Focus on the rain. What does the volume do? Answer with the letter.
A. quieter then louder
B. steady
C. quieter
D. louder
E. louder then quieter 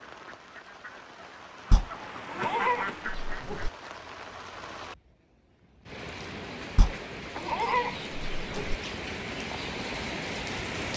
D.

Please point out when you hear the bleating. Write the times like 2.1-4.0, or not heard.
1.7-3.7, 6.8-8.8.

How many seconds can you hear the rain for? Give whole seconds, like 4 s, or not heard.
11 s.